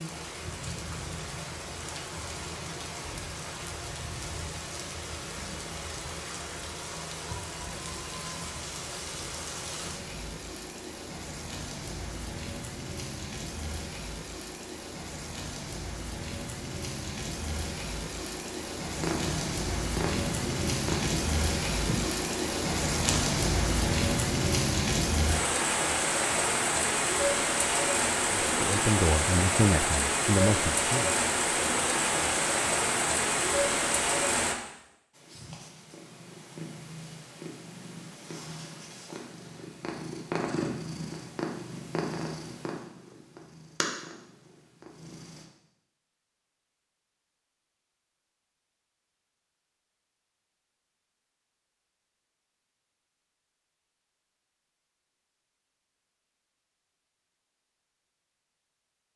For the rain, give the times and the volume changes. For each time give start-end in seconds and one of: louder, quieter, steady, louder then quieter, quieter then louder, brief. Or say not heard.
0.0-34.5 louder.